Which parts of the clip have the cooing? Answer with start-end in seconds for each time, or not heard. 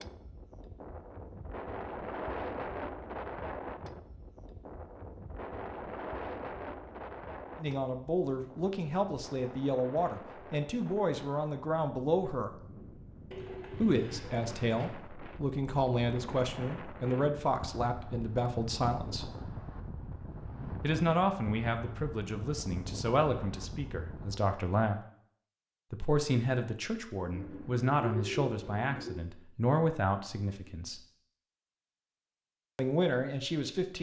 13.3-14.9, 27.3-29.2.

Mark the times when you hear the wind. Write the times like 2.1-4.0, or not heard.
0.0-24.4.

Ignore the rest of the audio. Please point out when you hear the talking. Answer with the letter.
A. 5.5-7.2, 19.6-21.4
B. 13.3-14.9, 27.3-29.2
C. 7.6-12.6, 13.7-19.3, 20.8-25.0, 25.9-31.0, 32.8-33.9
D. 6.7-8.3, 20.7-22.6
C.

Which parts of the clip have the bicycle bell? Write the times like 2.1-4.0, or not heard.
not heard.